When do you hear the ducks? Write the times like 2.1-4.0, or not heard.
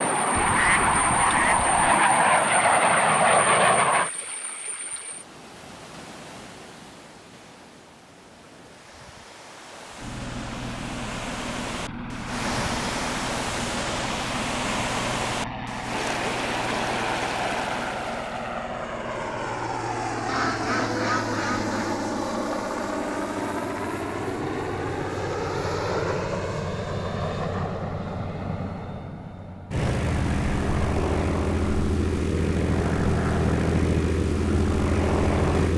0.3-1.8, 20.2-21.9.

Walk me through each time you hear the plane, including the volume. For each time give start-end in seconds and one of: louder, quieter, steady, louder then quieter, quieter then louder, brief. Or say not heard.
0.0-4.1 steady
9.9-35.7 louder.